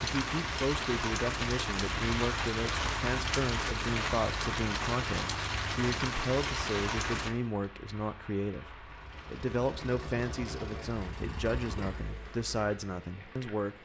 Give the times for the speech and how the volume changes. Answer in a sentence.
The speech can be heard from 0.0 to 13.7 s, at a steady volume.